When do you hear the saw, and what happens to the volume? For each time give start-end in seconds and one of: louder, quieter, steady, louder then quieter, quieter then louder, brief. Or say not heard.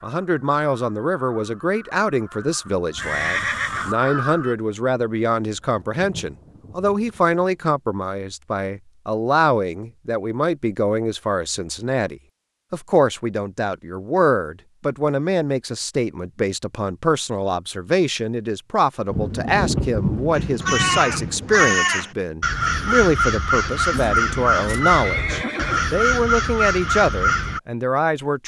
not heard.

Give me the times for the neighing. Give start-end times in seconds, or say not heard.
3.0-4.0, 23.9-25.9.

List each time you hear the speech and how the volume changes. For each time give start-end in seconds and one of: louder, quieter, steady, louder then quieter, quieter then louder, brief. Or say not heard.
0.0-28.4 steady.